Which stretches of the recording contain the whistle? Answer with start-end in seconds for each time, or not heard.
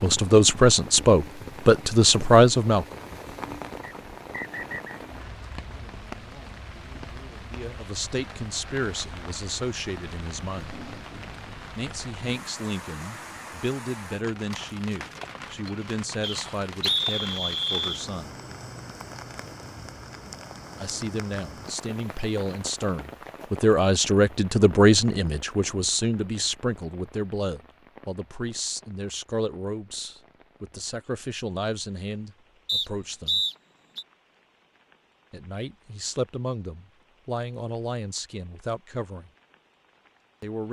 3.8-5.0, 16.2-18.1, 32.6-34.0.